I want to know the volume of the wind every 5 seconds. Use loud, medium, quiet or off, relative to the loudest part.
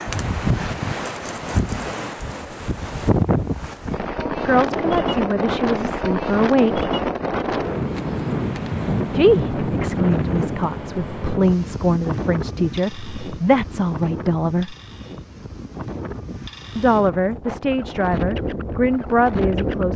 loud, loud, medium, medium.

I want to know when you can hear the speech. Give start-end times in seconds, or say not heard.
4.3-6.9, 9.2-14.8, 16.8-19.9.